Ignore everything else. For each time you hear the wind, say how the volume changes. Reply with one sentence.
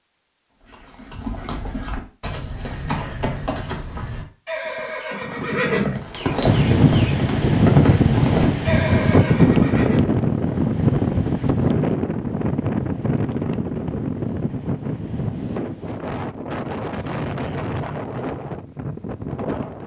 You can hear the wind from 6.5 to 19.8 s, getting quieter.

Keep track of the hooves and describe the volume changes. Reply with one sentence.
The volume of the hooves goes up.